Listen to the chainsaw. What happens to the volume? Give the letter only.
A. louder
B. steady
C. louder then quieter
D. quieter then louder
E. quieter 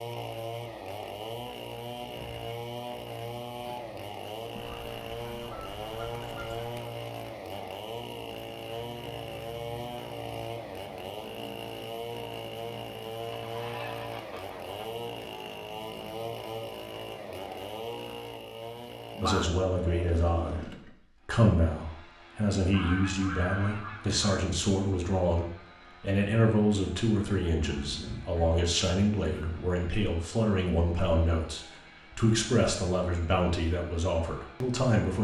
E.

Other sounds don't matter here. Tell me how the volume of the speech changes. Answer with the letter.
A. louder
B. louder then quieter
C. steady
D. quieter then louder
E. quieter
C.